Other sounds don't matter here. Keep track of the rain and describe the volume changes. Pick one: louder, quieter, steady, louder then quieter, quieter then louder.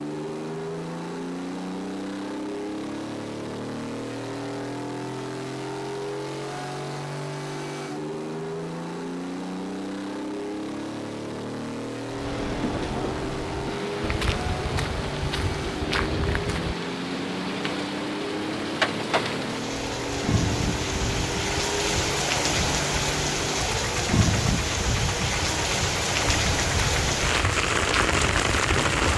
louder.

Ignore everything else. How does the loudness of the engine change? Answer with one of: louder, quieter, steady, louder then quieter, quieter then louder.
steady.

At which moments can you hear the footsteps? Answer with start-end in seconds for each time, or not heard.
14.0-16.8, 26.2-29.1.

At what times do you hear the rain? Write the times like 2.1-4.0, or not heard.
12.1-29.1.